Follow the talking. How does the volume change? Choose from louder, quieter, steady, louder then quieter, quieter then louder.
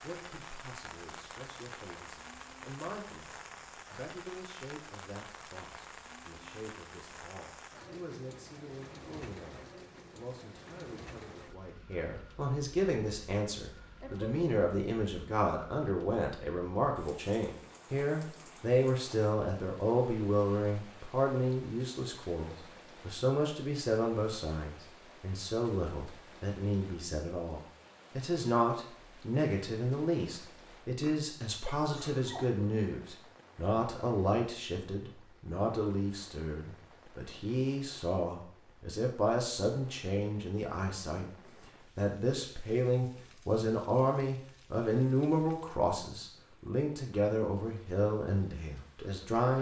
louder.